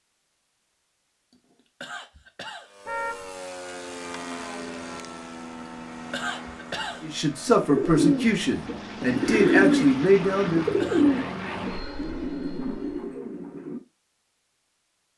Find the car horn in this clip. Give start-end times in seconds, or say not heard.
2.9-3.4.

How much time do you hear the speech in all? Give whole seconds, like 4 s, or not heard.
4 s.